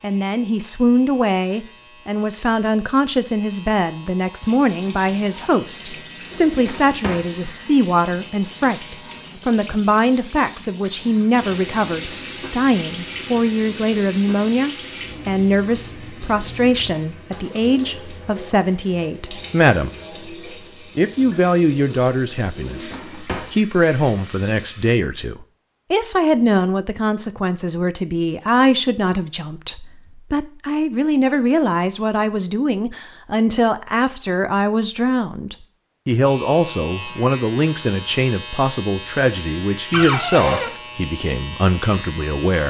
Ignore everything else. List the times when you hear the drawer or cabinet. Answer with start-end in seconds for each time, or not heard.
6.3-7.3, 22.6-23.6, 39.9-40.7.